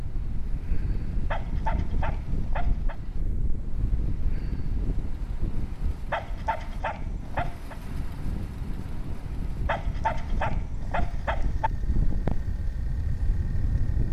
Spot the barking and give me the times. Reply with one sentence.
You can hear the barking from 1.3 to 3.0 s, from 6.1 to 7.8 s and from 9.7 to 11.7 s.